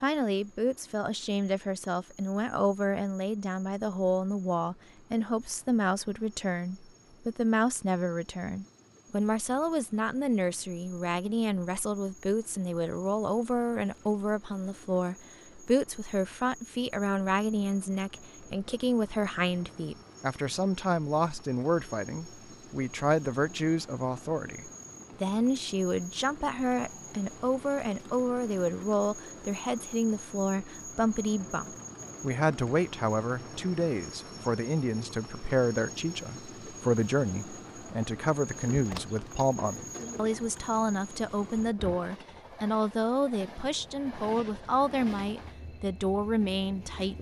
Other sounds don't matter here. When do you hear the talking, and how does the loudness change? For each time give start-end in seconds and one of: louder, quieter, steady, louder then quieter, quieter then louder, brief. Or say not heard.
0.0-47.1 steady.